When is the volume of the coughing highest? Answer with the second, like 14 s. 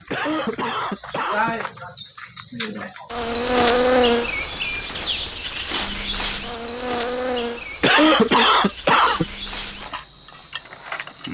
8 s.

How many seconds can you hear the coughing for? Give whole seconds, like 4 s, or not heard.
3 s.